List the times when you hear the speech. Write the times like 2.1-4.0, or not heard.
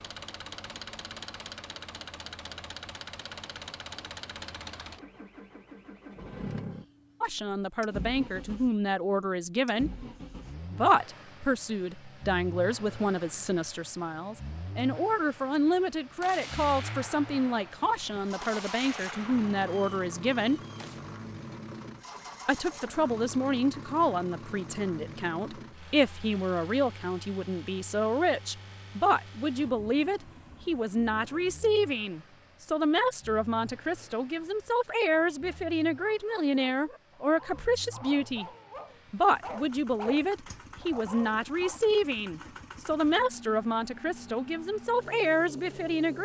7.2-9.9, 10.7-20.6, 22.4-38.5, 39.1-46.1.